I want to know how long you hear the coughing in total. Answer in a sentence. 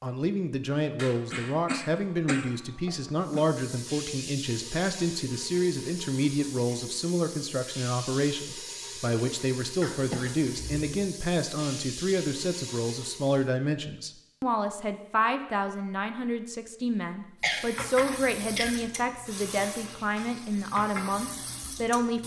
The coughing can be heard for 5 seconds in total.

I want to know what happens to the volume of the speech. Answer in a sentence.
The loudness of the speech stays about the same.